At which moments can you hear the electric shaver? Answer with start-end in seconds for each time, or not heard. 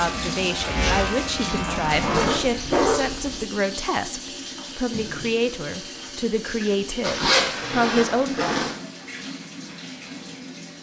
0.0-2.2.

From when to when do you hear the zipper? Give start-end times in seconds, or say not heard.
1.6-3.4, 7.0-8.7.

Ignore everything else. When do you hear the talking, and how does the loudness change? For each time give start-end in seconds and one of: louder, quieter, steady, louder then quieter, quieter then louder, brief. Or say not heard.
0.0-8.3 steady.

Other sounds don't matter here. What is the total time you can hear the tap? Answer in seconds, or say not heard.
11 s.